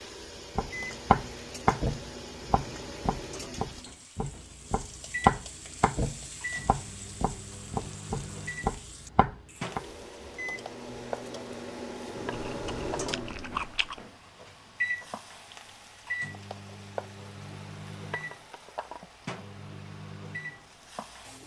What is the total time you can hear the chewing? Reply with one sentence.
The chewing can be heard for 2 seconds in total.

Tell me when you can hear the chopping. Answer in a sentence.
You can hear the chopping from 0.6 to 9.8 s.